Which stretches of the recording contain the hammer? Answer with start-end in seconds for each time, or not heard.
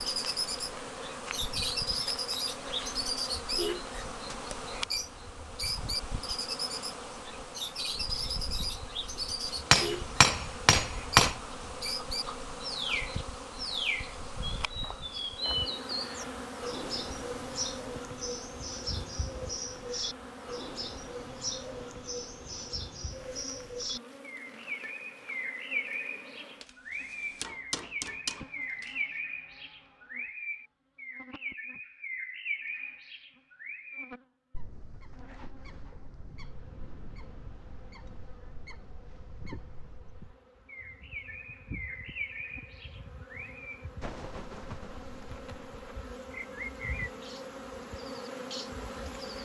9.7-11.3, 26.6-28.9.